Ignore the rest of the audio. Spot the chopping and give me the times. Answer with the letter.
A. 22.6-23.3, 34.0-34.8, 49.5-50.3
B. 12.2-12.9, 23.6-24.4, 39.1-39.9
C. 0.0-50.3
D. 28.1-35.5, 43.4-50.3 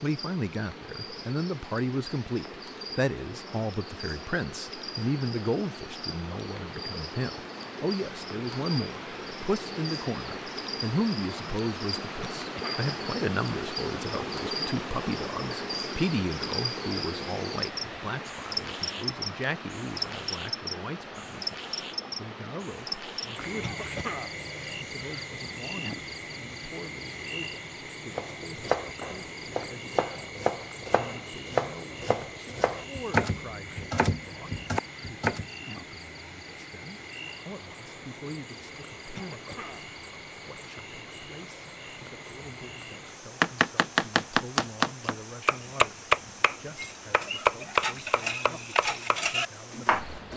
D.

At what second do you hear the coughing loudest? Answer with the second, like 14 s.
24 s.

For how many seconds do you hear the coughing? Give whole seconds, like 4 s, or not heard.
2 s.